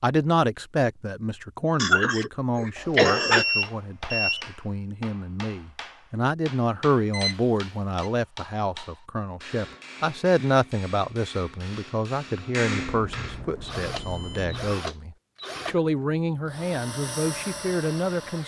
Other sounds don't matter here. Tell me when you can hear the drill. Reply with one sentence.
The drill can be heard from 13.6 to 18.4 s.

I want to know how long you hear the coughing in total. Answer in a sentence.
The coughing can be heard for 2 seconds in total.